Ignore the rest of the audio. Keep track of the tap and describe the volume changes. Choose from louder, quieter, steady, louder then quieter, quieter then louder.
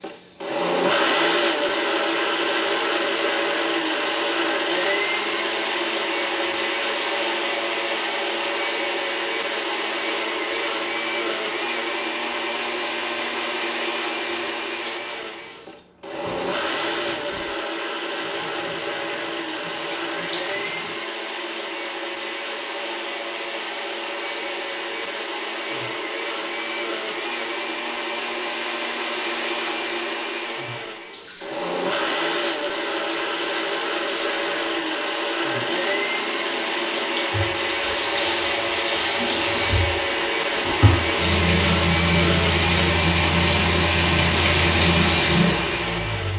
louder.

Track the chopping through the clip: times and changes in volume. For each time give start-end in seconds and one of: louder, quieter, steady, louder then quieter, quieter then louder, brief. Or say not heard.
not heard.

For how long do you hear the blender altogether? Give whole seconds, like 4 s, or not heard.
46 s.